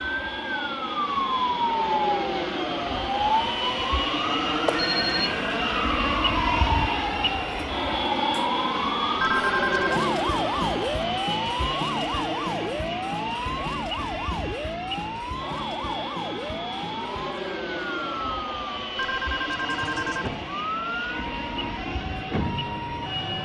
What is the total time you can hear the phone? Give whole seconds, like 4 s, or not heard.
3 s.